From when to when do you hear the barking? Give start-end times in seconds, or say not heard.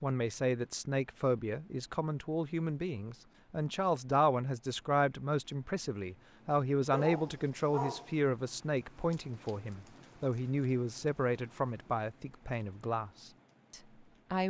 6.9-8.2.